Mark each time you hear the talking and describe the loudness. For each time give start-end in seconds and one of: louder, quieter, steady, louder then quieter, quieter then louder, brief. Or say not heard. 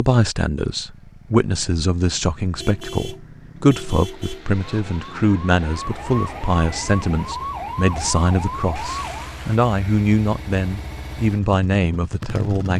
0.0-12.7 steady.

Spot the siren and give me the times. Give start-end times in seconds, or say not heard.
4.6-9.3.